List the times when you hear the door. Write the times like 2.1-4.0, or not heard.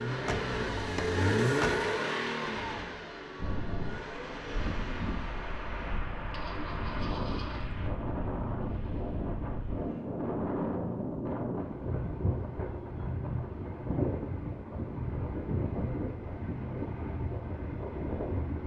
0.1-1.9.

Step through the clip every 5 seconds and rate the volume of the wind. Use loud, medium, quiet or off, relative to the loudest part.
medium, loud, loud, loud.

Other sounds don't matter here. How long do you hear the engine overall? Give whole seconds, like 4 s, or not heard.
8 s.